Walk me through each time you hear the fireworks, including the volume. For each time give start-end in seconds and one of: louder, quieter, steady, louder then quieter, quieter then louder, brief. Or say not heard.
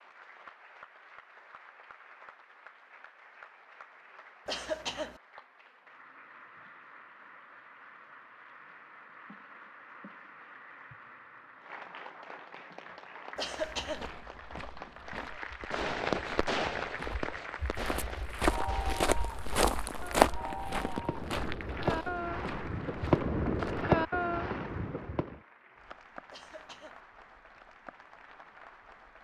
15.6-25.4 quieter then louder.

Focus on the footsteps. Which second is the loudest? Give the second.
20 s.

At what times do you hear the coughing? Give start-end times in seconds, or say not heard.
4.5-5.2, 13.3-14.1, 26.3-27.0.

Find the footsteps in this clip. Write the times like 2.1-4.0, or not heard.
13.6-23.9.